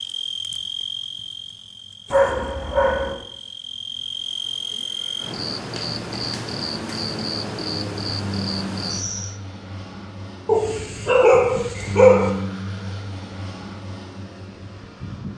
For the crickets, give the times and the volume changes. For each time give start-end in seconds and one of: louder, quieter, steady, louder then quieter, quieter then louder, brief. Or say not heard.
0.0-9.4 quieter then louder.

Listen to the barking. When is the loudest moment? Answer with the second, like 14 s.
12 s.